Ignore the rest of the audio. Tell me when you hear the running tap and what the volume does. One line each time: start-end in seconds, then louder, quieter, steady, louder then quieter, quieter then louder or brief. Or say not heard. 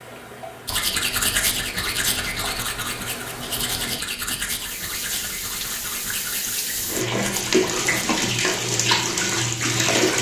0.0-10.1 louder.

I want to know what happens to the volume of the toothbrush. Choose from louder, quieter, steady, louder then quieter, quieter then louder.
quieter.